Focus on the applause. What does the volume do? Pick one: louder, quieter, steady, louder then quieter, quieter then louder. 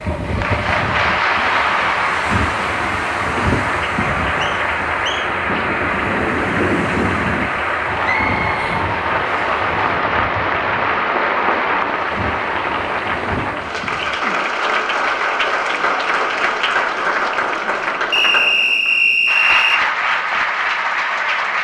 steady.